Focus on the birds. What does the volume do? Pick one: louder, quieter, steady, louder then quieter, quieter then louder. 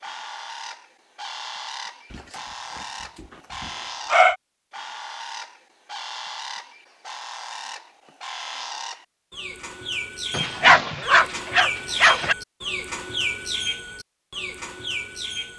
louder.